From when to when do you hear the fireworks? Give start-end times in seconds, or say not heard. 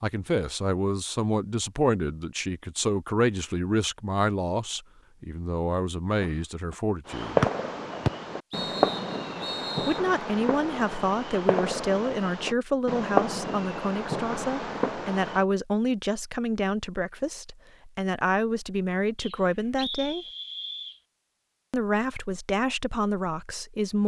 7.0-15.4.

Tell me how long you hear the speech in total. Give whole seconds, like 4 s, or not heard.
20 s.